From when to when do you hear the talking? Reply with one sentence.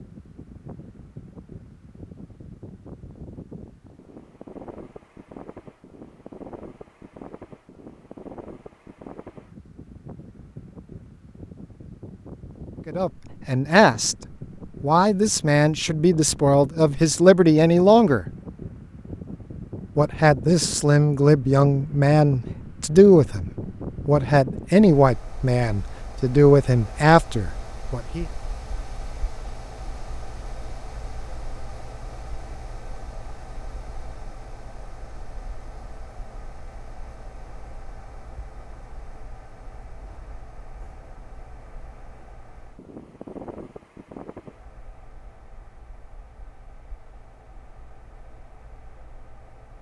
The talking can be heard from 12.8 to 14.2 s, from 14.8 to 18.2 s and from 19.9 to 28.2 s.